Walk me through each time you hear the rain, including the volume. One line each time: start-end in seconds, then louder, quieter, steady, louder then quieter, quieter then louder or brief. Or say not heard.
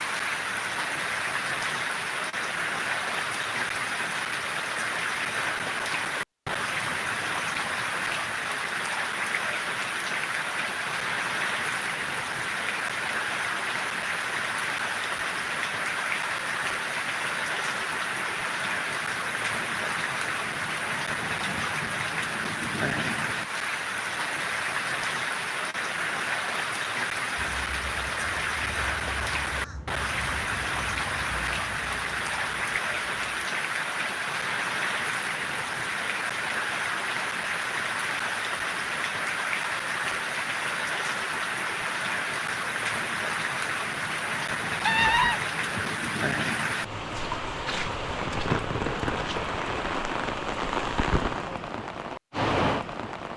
0.0-53.3 steady.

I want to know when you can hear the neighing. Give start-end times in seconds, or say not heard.
44.9-46.0.